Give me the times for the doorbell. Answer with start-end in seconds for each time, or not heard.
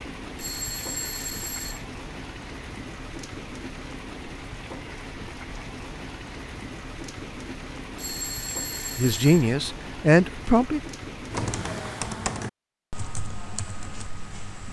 0.3-1.8, 8.0-9.5.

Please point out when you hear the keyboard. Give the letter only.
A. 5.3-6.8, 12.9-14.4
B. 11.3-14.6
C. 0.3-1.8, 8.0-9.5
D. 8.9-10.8
B.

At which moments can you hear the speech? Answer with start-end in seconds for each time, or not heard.
8.9-10.8.